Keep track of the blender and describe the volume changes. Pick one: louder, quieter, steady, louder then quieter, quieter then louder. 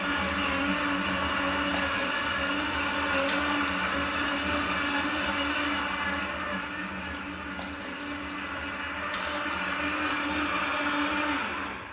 quieter then louder.